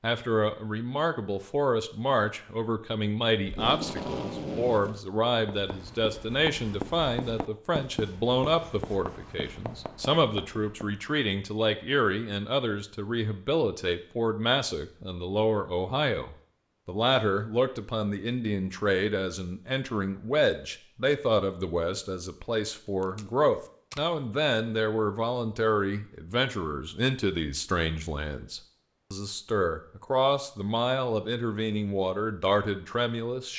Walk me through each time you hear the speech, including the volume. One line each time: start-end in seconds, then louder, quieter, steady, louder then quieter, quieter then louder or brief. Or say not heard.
0.0-33.5 steady.